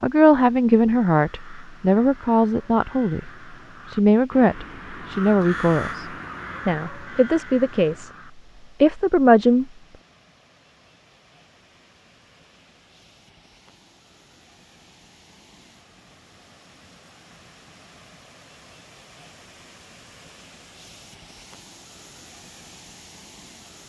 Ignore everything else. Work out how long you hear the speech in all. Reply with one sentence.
The speech can be heard for 9 seconds in total.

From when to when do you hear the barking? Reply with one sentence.
The barking can't be heard in this clip.